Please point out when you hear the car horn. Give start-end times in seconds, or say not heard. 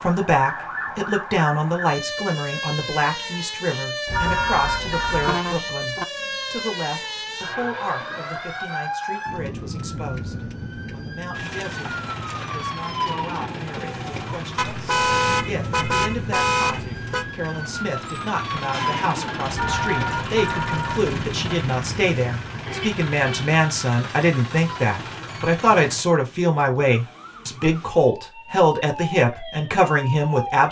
4.0-6.0, 14.6-17.2, 22.6-23.5.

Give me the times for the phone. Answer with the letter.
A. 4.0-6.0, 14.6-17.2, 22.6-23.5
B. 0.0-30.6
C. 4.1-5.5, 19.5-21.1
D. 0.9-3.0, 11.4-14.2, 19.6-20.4
C.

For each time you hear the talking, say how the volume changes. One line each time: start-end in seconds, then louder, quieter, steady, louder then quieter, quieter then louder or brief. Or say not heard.
0.0-30.6 quieter then louder.